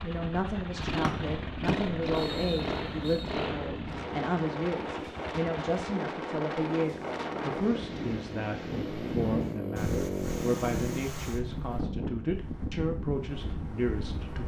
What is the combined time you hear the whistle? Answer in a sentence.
You can hear the whistle for 2 seconds altogether.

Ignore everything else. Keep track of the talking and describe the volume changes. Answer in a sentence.
The volume of the talking stays about the same.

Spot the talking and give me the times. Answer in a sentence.
You can hear the talking from 0.0 to 14.4 s.